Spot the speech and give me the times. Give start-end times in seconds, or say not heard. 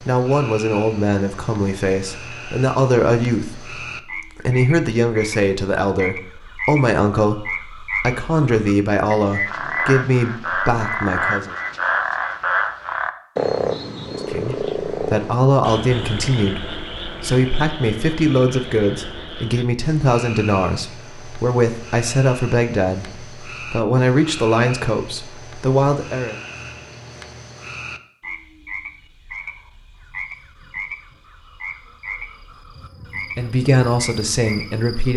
0.0-11.6, 14.2-26.4, 33.4-35.1.